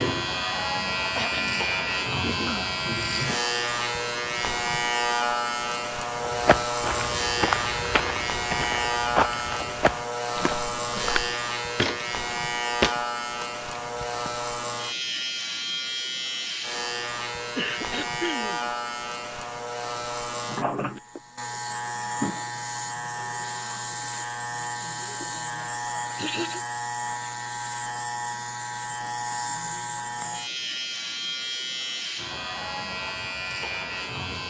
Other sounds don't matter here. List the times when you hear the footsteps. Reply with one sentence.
You can hear the footsteps from 6.2 to 14.3 s.